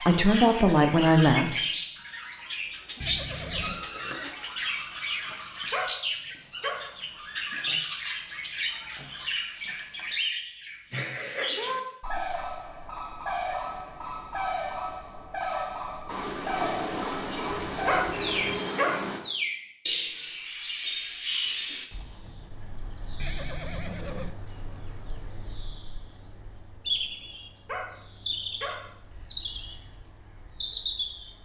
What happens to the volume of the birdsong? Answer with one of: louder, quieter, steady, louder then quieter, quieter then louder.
steady.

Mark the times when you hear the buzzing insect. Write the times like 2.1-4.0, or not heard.
16.1-19.2.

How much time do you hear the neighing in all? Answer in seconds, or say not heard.
3 s.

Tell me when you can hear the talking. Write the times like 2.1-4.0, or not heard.
0.0-1.6.